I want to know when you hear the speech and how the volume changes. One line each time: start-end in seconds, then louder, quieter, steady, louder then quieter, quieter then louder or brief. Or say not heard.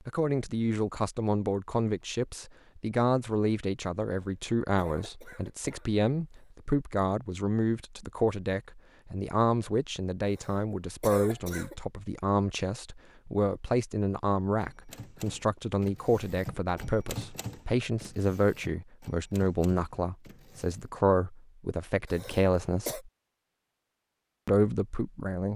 0.1-23.0 steady
24.4-25.5 brief.